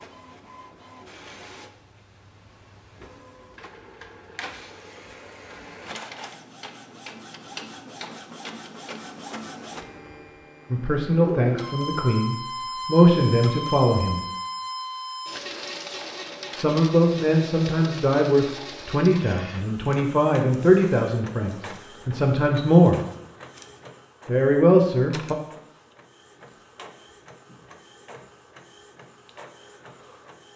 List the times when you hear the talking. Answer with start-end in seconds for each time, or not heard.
10.7-14.2, 16.6-23.0, 24.2-25.4.